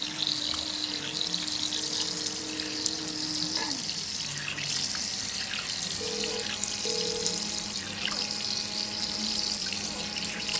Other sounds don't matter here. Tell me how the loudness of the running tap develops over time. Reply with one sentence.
The volume of the running tap stays about the same.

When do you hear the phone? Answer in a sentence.
The phone can be heard from 0.9 to 3.1 s and from 6.0 to 7.5 s.